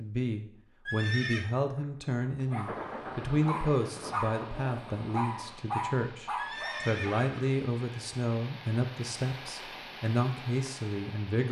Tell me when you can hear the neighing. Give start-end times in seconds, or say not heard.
0.8-1.4, 6.3-7.6.